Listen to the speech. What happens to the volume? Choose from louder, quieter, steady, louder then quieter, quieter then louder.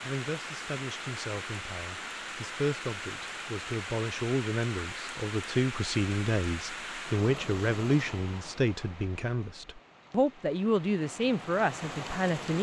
louder.